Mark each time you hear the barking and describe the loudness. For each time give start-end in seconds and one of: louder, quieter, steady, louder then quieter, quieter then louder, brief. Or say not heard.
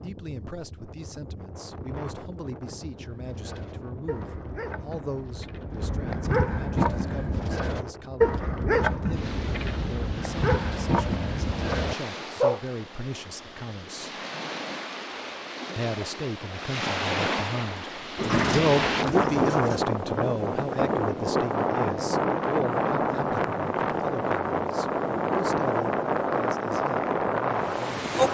3.0-12.6 louder.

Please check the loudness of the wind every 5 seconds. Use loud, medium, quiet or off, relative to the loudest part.
quiet, quiet, quiet, loud, loud, loud.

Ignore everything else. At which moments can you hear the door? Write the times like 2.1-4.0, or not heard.
18.1-19.8.